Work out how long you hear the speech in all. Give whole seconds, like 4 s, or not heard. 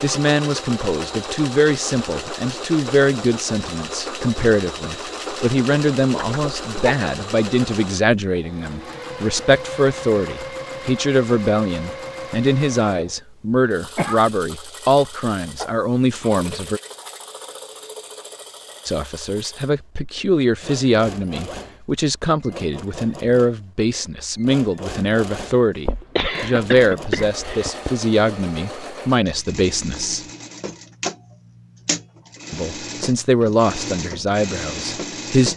31 s.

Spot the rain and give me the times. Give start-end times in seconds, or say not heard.
not heard.